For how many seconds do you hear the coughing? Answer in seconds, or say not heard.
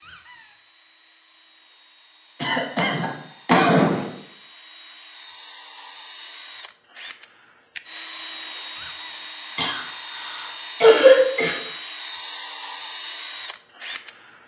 4 s.